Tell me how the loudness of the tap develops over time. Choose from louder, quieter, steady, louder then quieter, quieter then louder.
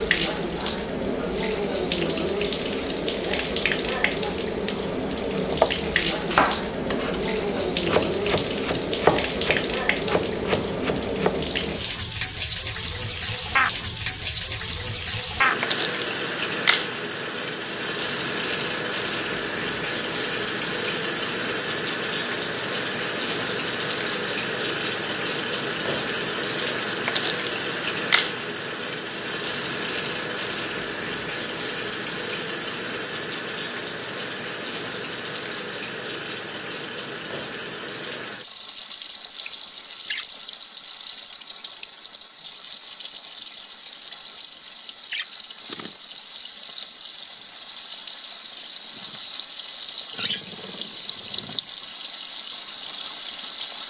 quieter.